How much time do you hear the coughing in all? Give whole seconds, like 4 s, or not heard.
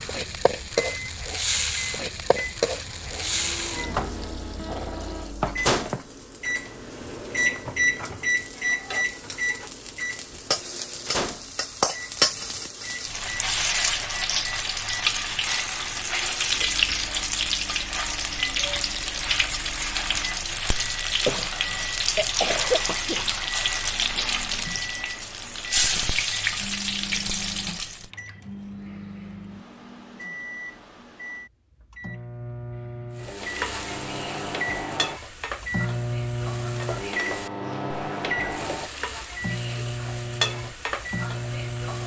2 s.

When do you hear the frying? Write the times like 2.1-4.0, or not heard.
0.0-28.1, 33.1-42.0.